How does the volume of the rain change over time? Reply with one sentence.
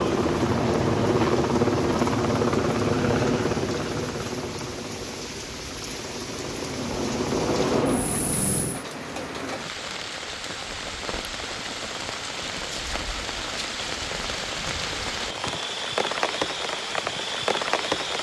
The loudness of the rain goes up.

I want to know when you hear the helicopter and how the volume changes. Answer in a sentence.
The helicopter can be heard from 0.0 to 8.8 s, getting quieter then louder.